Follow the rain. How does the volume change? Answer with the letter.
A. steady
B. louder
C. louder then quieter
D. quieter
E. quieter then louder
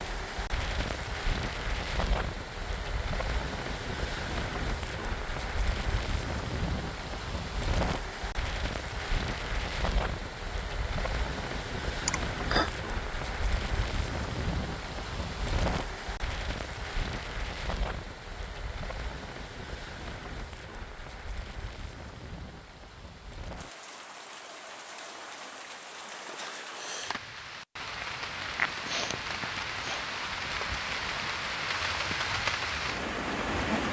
E.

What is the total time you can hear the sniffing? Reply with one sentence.
You can hear the sniffing for 2 seconds altogether.